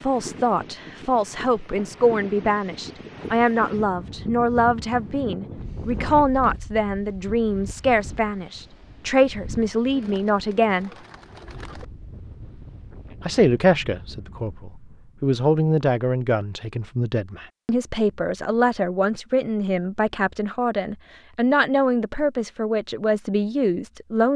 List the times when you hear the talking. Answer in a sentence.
You can hear the talking from 0.0 to 10.9 s and from 13.2 to 24.3 s.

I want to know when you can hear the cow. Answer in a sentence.
The cow can't be heard in this clip.